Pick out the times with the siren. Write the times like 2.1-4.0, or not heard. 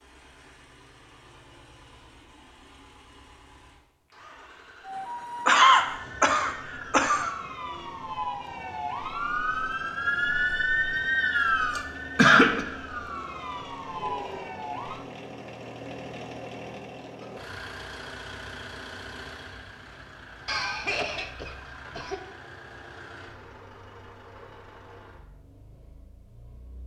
4.8-15.1.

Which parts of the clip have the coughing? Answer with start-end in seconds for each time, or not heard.
5.5-7.3, 11.8-12.7, 20.4-22.1.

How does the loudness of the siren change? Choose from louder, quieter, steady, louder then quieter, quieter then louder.
louder then quieter.